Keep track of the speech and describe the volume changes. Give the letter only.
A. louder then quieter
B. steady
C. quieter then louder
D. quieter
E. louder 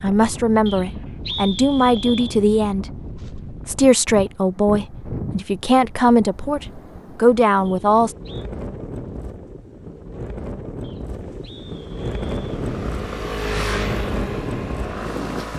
B.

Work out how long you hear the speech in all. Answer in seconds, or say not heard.
8 s.